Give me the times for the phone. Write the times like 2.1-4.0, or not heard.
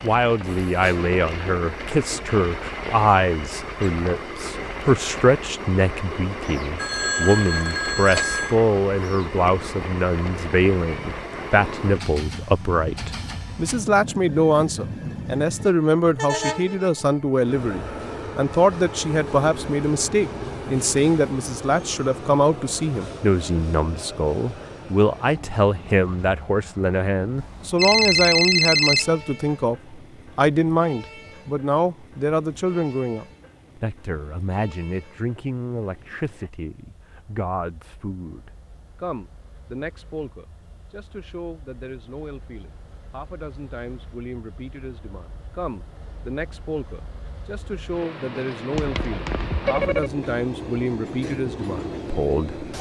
6.8-8.6, 27.4-29.1, 48.8-50.1.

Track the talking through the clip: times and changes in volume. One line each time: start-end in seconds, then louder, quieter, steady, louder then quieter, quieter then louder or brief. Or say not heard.
0.0-52.6 quieter.